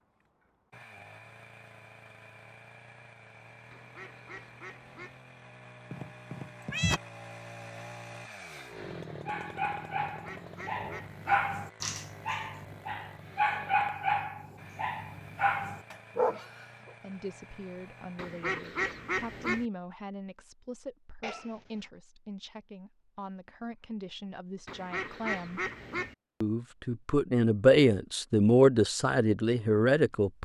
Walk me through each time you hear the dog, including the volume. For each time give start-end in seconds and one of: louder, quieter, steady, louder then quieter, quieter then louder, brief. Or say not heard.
9.2-16.9 louder.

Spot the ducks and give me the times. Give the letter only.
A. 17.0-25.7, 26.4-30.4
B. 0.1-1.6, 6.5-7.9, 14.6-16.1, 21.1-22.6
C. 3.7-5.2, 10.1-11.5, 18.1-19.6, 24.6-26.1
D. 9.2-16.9
C.